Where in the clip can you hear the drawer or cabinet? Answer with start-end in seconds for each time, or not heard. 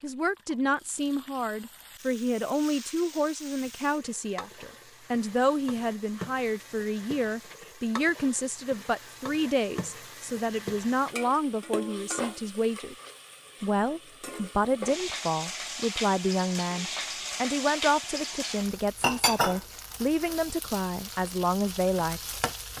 not heard.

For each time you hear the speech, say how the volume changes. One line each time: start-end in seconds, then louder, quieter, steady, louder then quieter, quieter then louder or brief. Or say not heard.
0.0-12.9 steady
13.6-22.4 steady.